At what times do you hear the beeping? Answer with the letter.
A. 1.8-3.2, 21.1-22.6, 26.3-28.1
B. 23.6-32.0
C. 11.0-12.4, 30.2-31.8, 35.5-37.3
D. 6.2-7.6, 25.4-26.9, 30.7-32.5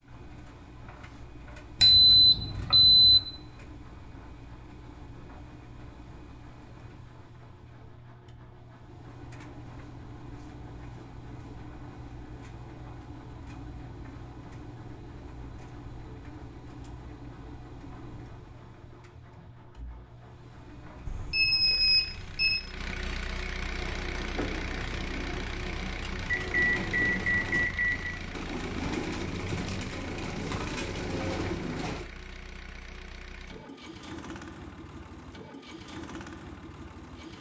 A.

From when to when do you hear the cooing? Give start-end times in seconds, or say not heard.
23.6-32.0.